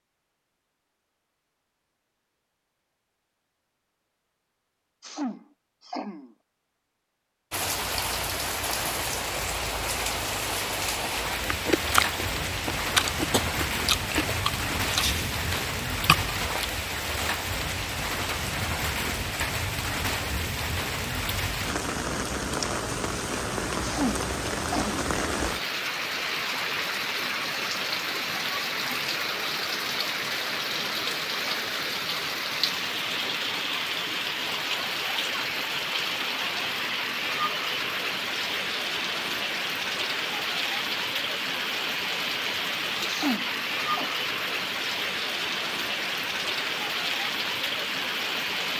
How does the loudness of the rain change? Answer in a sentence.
The loudness of the rain stays about the same.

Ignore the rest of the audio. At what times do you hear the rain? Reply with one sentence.
You can hear the rain from 7.5 to 48.7 s.